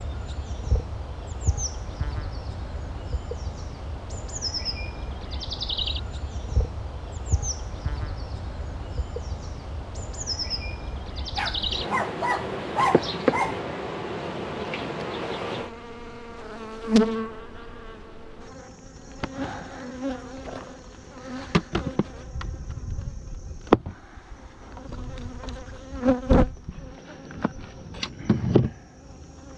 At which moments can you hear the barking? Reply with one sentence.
You can hear the barking from 11.3 to 13.6 s.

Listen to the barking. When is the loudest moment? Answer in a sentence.
The volume of the barking peaks at 13 seconds.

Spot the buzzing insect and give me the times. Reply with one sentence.
You can hear the buzzing insect from 0.0 to 29.5 s.